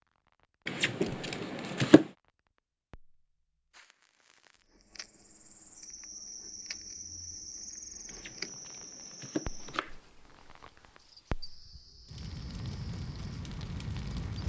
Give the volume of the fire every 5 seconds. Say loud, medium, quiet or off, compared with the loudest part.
quiet, medium, loud.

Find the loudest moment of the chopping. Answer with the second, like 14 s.
2 s.